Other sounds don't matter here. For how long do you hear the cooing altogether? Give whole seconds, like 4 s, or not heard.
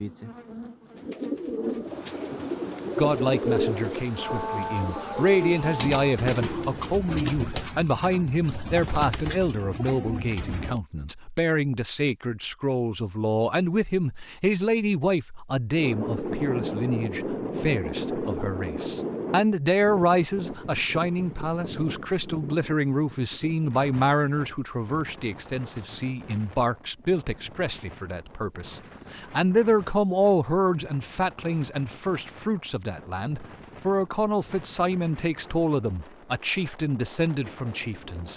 10 s.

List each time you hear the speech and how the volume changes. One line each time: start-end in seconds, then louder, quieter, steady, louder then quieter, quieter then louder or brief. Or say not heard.
3.0-38.3 steady.